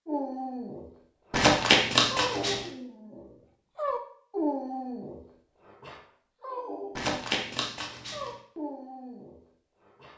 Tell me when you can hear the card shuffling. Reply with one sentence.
You can hear the card shuffling from 1.3 to 2.6 s and from 7.0 to 8.3 s.